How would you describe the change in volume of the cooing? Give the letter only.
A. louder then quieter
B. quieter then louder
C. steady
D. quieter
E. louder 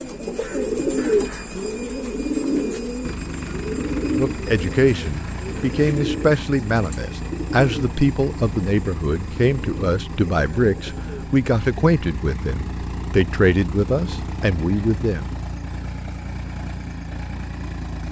D.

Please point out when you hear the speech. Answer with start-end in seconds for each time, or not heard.
4.0-15.2.